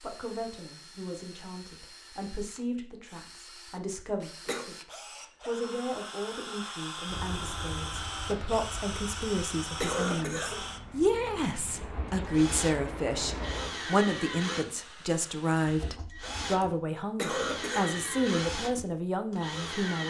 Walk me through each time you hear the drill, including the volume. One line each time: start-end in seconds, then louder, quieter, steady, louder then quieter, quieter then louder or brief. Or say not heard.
0.0-20.0 louder.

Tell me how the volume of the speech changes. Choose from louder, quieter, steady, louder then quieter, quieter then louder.
louder.